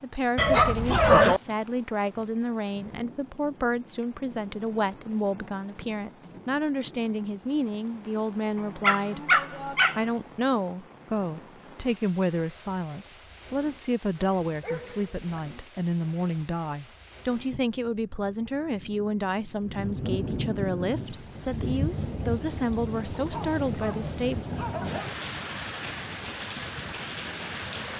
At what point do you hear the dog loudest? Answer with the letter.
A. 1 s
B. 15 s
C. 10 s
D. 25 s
A.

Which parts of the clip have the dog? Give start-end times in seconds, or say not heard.
0.3-1.4, 8.8-10.0, 14.2-15.4, 23.1-25.1.